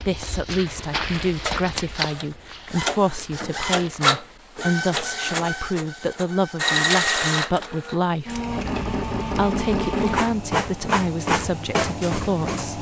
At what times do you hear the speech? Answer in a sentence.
The speech can be heard from 0.1 to 8.4 s and from 9.3 to 12.7 s.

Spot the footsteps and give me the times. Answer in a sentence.
You can hear the footsteps from 0.0 to 4.2 s.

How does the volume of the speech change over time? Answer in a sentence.
The loudness of the speech stays about the same.